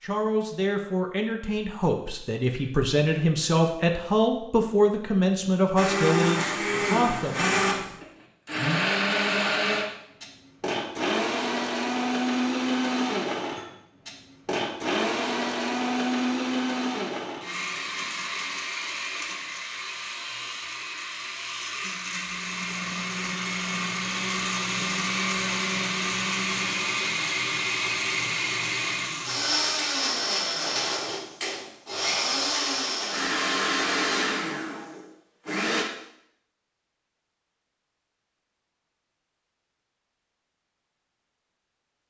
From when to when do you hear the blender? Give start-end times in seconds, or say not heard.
5.8-35.9.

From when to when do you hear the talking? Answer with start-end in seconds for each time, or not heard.
0.0-7.5.